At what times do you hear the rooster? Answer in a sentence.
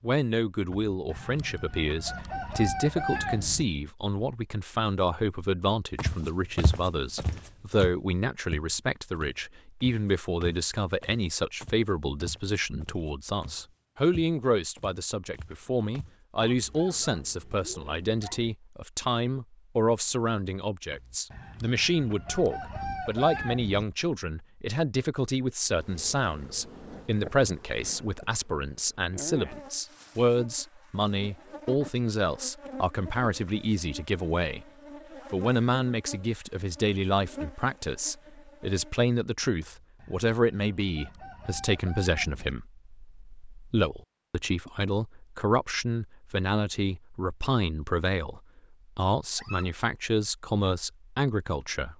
You can hear the rooster from 0.7 to 3.6 s, from 20.9 to 23.9 s and from 39.6 to 42.5 s.